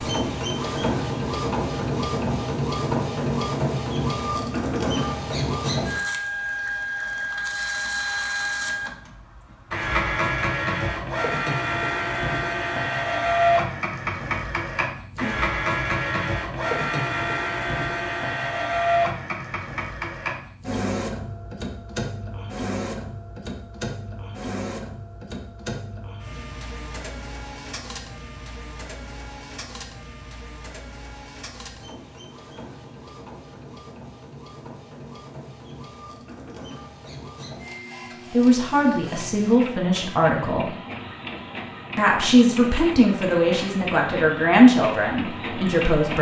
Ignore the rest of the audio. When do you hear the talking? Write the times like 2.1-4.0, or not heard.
38.3-40.8, 42.0-46.1.